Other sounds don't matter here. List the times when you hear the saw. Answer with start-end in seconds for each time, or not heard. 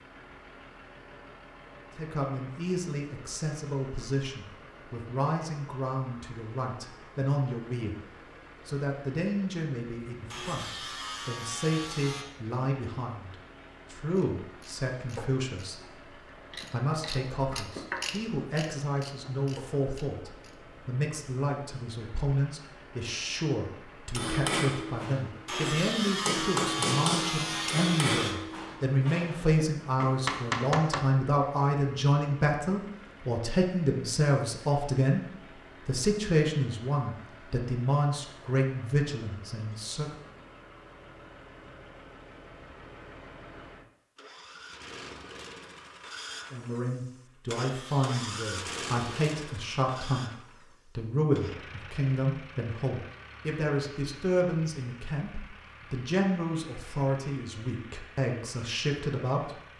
10.3-12.2, 25.4-28.4, 47.5-49.3.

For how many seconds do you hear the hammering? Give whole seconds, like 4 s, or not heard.
7 s.